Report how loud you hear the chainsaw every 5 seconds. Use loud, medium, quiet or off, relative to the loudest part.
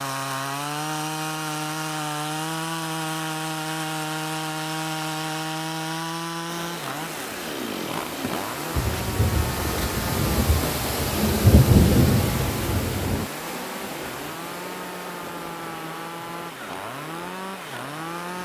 loud, loud, medium, medium.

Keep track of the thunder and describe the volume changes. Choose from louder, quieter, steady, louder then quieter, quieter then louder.
louder then quieter.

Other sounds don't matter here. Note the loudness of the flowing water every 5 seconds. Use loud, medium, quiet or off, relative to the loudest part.
off, loud, loud, medium.